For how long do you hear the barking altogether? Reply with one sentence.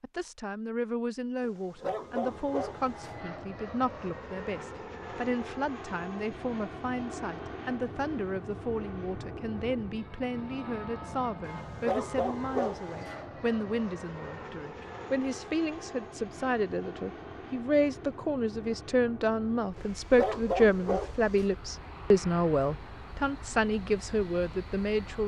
You can hear the barking for 5 seconds altogether.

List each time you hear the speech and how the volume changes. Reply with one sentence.
The speech can be heard from 0.0 to 25.2 s, getting louder.